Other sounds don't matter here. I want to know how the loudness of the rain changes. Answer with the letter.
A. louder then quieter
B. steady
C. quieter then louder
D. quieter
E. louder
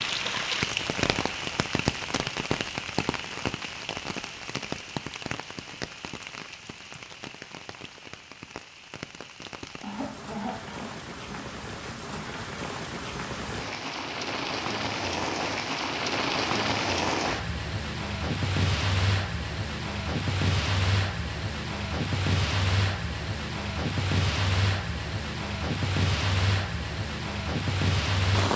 C.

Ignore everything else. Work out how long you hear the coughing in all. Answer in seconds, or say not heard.
2 s.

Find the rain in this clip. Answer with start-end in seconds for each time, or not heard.
0.0-28.5.